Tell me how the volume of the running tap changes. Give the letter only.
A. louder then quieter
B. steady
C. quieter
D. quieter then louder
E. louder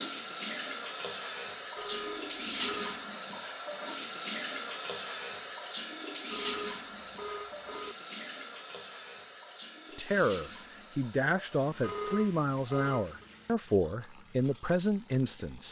C.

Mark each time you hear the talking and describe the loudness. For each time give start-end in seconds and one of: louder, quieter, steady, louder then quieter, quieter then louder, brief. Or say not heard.
9.9-15.6 steady.